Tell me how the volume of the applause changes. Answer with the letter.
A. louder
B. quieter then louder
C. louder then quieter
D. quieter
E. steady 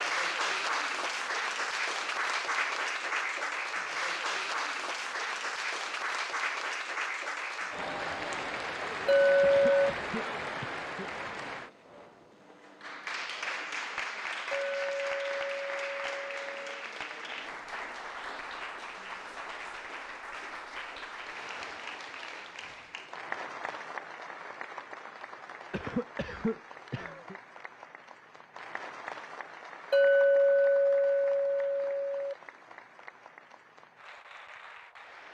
D.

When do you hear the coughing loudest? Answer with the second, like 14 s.
26 s.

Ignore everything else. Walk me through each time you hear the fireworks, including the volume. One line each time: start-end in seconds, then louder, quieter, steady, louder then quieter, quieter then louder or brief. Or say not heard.
not heard.